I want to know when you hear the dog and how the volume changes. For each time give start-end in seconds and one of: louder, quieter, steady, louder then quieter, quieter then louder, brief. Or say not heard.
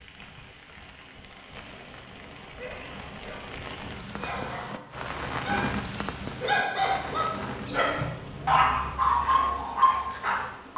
2.5-10.7 louder.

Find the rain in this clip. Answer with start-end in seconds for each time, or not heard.
0.0-10.7.